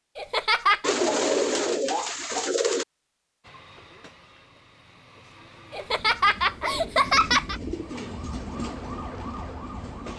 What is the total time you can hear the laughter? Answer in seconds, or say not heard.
3 s.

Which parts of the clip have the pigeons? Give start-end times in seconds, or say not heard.
0.8-2.9, 6.6-8.2.